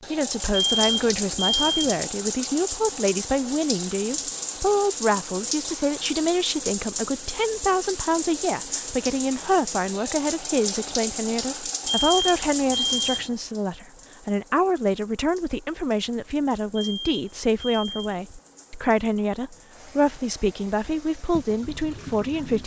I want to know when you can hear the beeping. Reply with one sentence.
The beeping can be heard from 0.5 to 2.0 s, from 11.8 to 13.3 s and from 16.8 to 18.2 s.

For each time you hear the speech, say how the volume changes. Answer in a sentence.
The speech can be heard from 0.1 to 22.6 s, at a steady volume.